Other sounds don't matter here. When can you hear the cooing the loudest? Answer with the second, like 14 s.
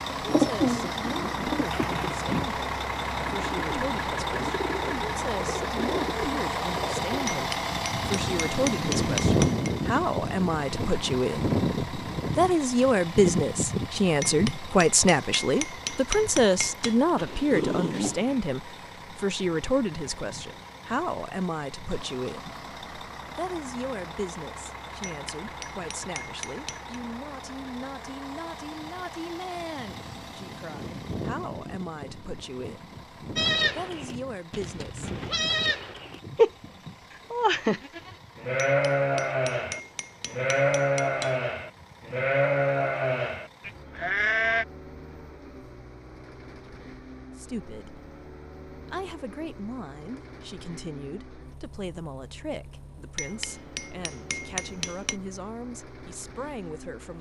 1 s.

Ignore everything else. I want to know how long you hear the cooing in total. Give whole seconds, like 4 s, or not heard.
7 s.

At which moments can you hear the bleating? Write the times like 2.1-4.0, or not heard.
33.4-44.6.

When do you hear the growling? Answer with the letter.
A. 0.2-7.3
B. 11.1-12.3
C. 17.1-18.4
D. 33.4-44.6
C.